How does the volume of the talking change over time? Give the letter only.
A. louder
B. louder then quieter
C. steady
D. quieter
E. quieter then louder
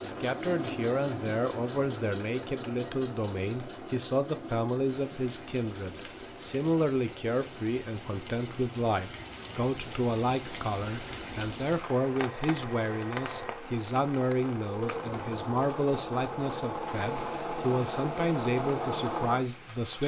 C.